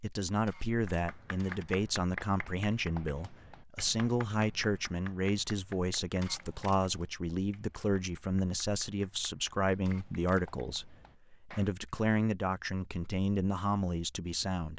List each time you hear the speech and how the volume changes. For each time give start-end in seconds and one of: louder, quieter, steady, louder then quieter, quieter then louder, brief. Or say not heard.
0.0-14.7 steady.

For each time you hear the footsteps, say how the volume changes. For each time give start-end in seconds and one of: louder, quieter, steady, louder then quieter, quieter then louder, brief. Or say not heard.
not heard.